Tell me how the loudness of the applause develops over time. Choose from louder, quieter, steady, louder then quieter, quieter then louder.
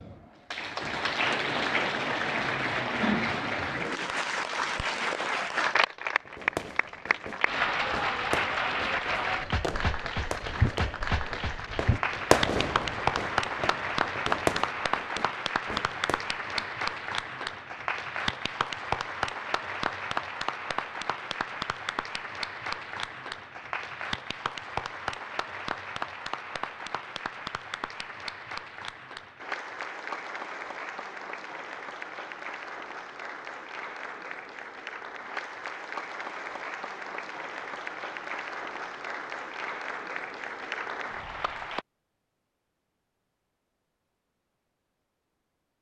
quieter.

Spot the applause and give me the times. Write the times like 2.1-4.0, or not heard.
0.0-41.9.